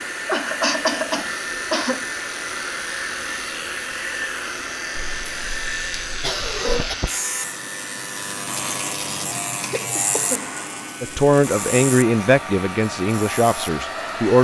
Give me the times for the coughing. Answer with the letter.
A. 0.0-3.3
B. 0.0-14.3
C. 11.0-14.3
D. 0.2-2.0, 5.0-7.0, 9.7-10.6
D.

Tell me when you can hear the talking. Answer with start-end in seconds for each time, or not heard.
11.0-14.3.